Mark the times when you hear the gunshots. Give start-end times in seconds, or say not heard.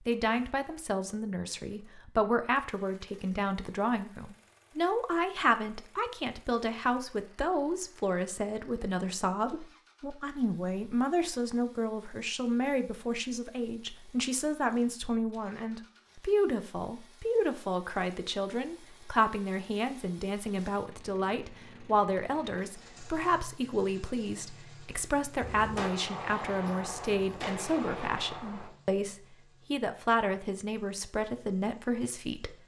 25.4-28.7.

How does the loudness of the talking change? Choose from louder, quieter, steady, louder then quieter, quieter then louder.
steady.